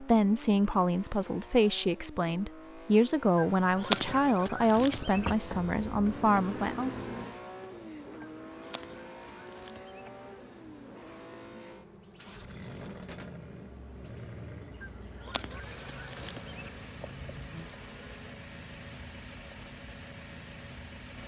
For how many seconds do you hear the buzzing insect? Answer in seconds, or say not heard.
13 s.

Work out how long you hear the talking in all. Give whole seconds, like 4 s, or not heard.
7 s.